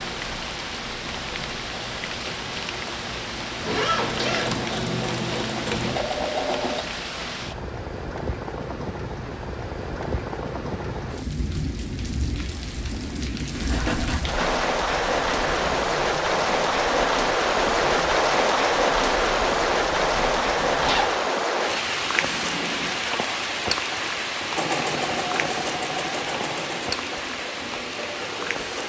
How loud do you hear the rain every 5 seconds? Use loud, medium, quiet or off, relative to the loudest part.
medium, medium, medium, loud, loud, medium.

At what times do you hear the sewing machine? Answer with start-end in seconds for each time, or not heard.
0.1-6.8, 24.6-28.8.